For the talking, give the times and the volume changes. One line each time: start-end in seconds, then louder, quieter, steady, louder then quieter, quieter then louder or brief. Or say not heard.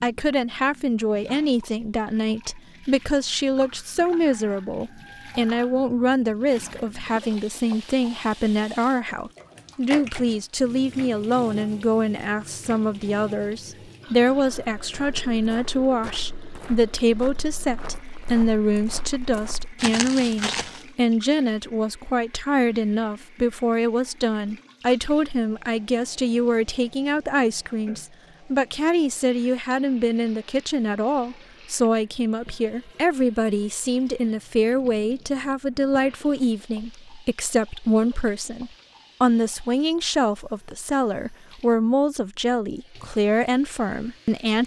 0.0-44.6 steady.